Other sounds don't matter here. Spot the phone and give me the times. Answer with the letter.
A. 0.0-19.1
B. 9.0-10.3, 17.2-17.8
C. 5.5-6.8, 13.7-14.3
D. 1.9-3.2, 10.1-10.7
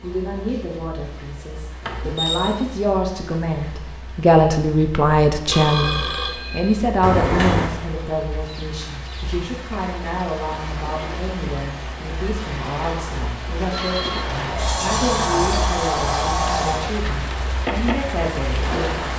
C.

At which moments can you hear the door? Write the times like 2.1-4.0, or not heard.
1.8-2.6, 7.0-7.7, 14.2-16.9.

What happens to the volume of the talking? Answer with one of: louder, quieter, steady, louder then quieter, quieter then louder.
louder then quieter.